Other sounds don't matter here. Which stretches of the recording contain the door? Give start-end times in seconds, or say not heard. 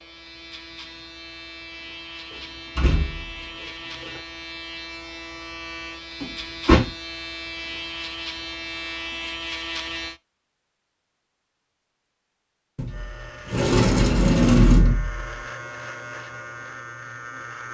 2.3-4.2, 6.2-6.9, 12.8-15.2.